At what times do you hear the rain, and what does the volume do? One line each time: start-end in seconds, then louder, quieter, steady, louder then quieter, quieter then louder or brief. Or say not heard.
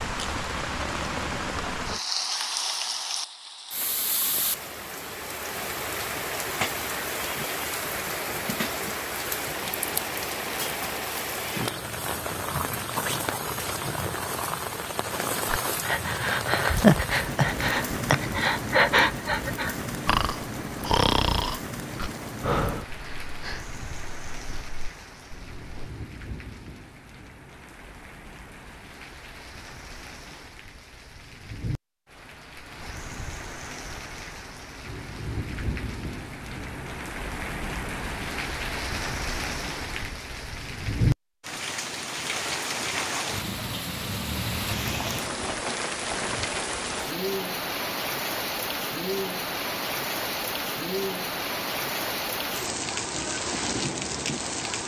0.0-54.8 quieter then louder.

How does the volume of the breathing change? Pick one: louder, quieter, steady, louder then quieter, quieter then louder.
quieter.